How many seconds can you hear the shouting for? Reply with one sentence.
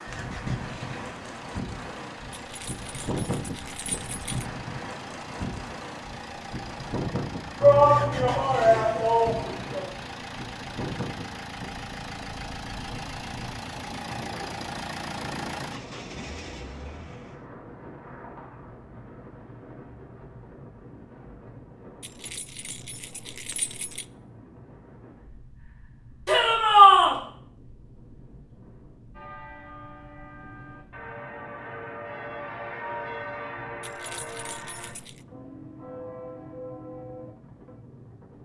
You can hear the shouting for 3 seconds altogether.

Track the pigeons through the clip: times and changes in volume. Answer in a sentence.
The pigeons can't be heard in this clip.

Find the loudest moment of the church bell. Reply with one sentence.
The volume of the church bell peaks at 33 seconds.